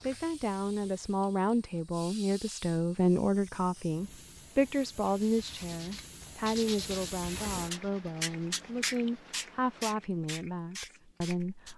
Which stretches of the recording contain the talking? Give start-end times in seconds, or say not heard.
0.0-11.7.